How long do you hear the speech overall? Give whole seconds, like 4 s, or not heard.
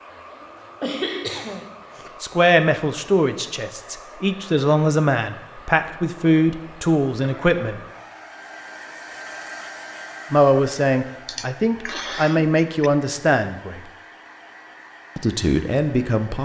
10 s.